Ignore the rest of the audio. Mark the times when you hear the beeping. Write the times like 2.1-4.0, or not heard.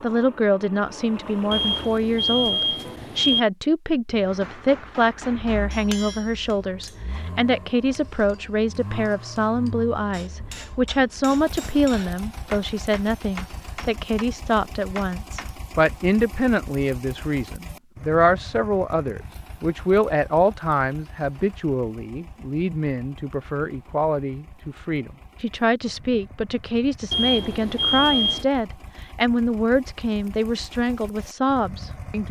1.5-3.4, 27.1-28.4.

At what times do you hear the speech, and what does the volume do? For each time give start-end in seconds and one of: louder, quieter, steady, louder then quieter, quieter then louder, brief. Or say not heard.
0.0-32.2 steady.